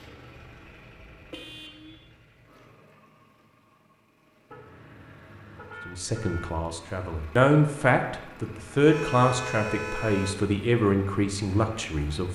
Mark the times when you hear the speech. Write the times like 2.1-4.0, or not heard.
5.8-12.3.